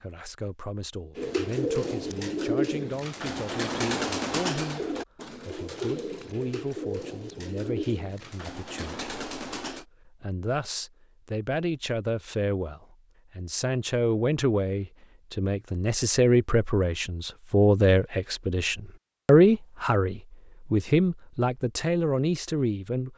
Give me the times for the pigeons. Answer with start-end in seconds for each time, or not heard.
1.1-9.8.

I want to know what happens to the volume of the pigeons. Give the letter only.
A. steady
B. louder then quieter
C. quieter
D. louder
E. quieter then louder
C.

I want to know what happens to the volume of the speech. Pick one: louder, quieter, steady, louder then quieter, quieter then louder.
louder.